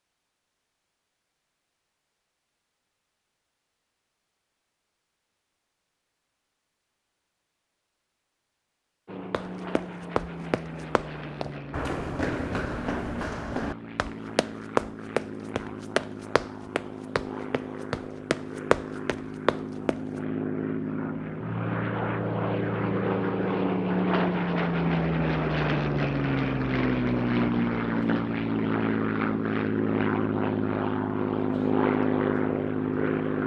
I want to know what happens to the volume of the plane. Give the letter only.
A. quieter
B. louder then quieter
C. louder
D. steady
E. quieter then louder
C.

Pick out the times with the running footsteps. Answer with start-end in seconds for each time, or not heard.
9.3-20.0.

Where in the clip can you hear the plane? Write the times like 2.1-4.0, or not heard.
9.1-33.4.